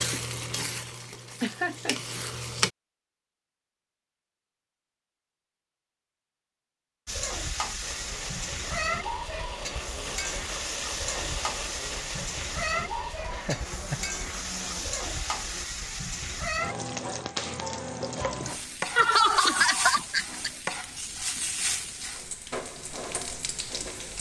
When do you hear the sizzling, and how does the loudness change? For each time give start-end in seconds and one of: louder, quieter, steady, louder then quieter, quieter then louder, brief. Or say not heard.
0.0-2.7 brief
7.0-24.1 steady.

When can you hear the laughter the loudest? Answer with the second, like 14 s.
19 s.